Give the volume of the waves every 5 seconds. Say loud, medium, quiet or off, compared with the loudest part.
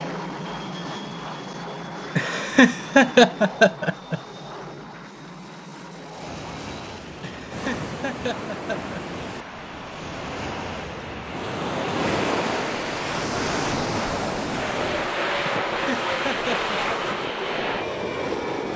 off, medium, loud, medium.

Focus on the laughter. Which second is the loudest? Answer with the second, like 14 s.
3 s.